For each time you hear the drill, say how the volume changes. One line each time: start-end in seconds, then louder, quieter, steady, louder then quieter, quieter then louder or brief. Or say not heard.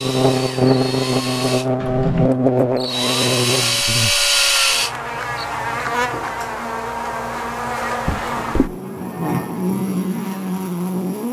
0.0-5.5 louder.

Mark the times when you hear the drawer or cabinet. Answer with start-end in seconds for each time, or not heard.
1.8-2.3, 8.1-8.8.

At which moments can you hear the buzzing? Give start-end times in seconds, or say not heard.
0.0-11.2.